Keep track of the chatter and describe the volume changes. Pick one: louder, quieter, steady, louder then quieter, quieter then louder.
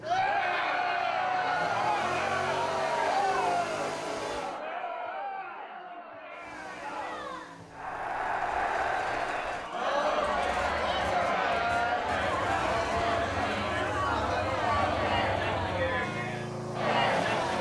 quieter then louder.